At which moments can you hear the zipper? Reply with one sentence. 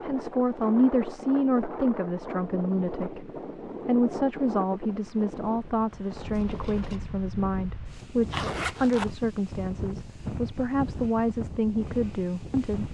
The zipper can be heard from 8.3 to 9.1 s.